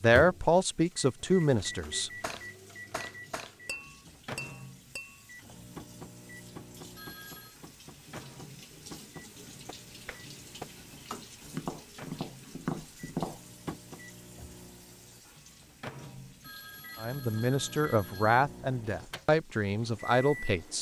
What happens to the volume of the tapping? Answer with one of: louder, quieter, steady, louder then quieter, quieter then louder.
quieter then louder.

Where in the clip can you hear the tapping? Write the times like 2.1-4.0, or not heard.
1.8-14.0.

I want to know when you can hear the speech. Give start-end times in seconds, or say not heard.
0.0-2.1, 17.0-20.7.